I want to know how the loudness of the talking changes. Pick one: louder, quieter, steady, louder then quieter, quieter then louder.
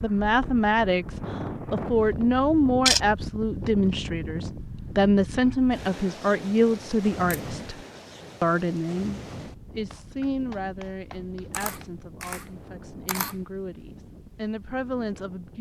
quieter.